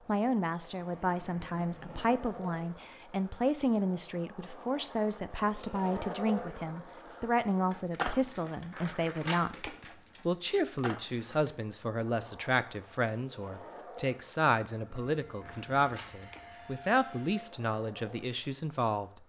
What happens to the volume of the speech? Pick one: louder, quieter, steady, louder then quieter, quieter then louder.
steady.